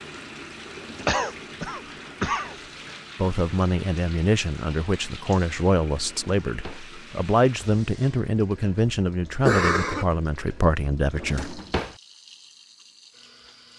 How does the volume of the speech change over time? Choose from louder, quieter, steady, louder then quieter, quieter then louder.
steady.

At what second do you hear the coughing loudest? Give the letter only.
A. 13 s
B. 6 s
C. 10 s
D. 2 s
C.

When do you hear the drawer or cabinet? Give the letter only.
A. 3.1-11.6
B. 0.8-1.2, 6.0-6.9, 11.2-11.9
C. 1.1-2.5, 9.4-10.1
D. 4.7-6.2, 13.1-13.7
B.